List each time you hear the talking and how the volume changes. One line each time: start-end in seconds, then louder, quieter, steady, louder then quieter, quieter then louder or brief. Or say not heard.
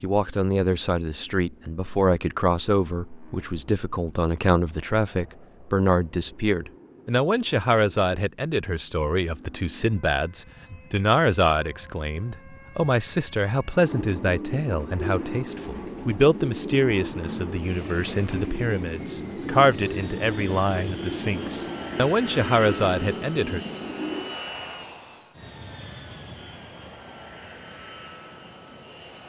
0.0-23.6 steady.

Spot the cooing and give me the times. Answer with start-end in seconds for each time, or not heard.
13.7-24.4.